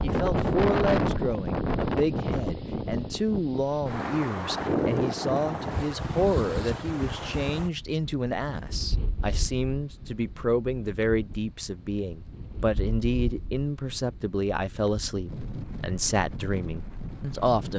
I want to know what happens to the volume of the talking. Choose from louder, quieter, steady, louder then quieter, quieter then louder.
steady.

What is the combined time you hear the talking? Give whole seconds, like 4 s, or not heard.
18 s.